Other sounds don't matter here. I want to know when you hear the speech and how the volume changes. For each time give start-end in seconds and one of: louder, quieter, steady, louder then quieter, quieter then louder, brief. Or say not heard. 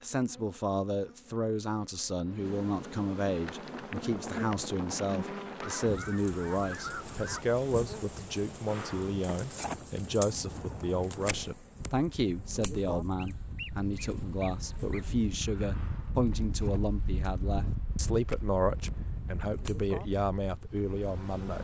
0.0-21.5 steady.